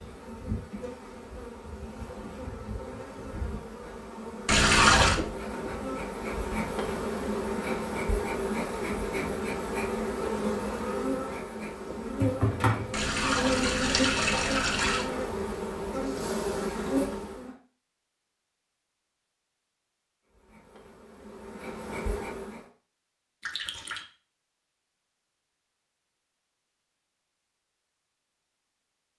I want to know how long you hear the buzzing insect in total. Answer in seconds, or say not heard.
20 s.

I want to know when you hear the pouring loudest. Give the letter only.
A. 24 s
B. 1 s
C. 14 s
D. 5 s
D.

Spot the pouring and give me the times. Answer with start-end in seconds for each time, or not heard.
4.5-5.2, 12.9-15.1, 23.4-24.1.